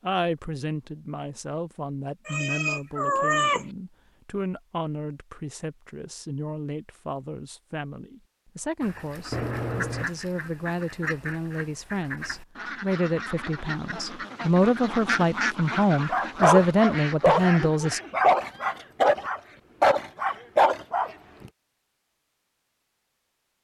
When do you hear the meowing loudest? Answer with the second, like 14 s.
3 s.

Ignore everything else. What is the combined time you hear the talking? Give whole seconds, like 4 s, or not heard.
18 s.